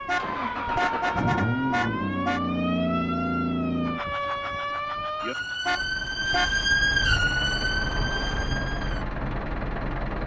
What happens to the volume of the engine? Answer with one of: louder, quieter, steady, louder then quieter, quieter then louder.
quieter then louder.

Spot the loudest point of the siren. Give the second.
7 s.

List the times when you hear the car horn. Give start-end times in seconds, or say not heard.
0.1-2.4, 5.7-6.5.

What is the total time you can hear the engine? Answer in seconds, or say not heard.
10 s.